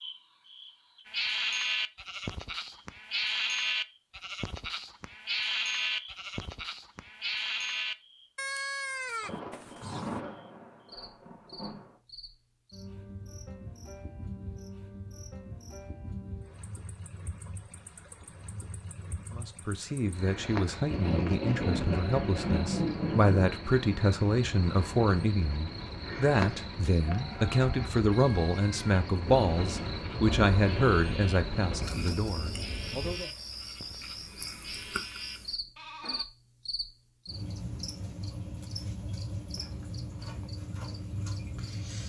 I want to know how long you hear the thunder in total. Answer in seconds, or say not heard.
9 s.